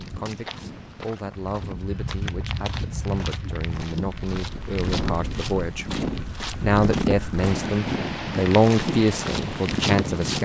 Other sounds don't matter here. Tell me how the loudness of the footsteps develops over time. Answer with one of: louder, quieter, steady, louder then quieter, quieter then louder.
louder.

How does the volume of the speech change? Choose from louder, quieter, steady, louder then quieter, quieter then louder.
louder.